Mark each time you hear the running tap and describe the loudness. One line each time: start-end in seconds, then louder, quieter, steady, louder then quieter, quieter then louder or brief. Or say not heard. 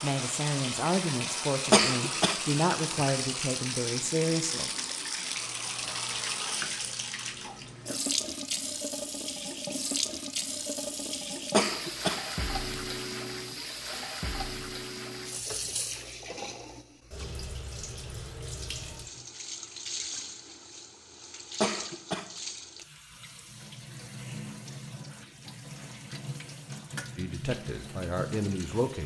0.0-29.0 quieter.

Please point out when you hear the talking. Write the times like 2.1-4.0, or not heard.
0.0-4.7, 27.1-29.0.